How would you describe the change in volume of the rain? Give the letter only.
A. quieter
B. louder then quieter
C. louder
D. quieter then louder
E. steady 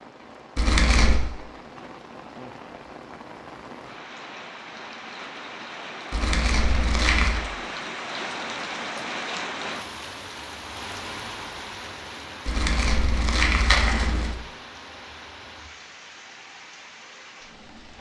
B.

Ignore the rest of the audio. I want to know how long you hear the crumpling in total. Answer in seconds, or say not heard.
4 s.